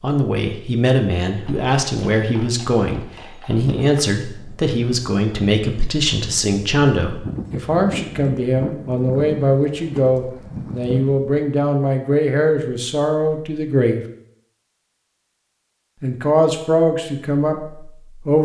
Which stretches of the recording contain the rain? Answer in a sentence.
The rain can't be heard in this clip.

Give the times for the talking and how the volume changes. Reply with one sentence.
The talking can be heard from 0.0 to 14.1 s, at a steady volume; and briefly from 16.0 to 18.4 s.